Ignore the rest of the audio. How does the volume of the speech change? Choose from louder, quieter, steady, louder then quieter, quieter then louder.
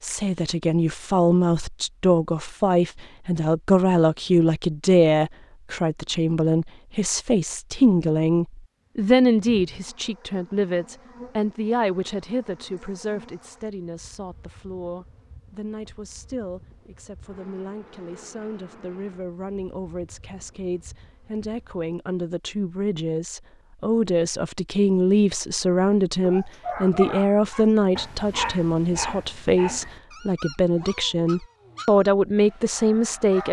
quieter then louder.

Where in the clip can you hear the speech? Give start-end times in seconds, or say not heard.
0.0-33.4.